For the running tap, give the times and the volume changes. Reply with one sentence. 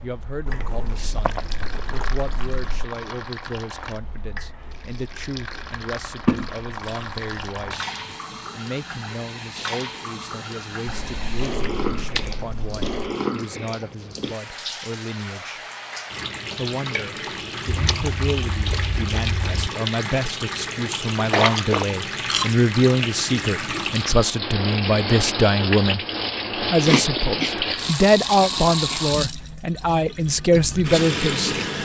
The running tap can be heard from 0.0 to 31.7 s, getting louder.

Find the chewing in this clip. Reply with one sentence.
The chewing can be heard from 0.5 to 2.9 s, from 6.2 to 8.2 s, from 10.8 to 12.9 s, from 17.6 to 19.7 s, from 21.2 to 22.6 s and from 26.9 to 29.0 s.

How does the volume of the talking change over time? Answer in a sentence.
The volume of the talking goes up.